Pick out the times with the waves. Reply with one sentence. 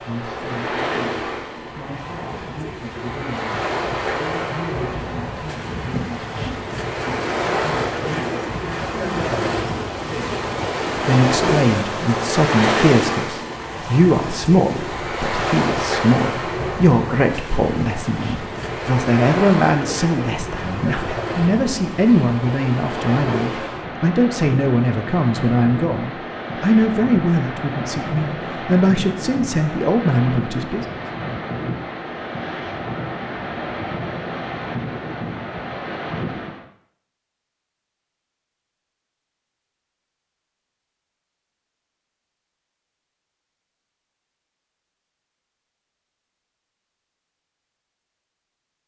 The waves can be heard from 0.0 to 36.6 s.